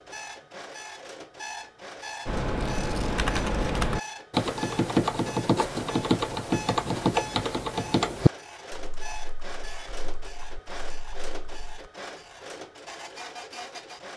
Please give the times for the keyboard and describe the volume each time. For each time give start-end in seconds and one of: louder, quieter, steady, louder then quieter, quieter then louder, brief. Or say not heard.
2.2-11.8 quieter.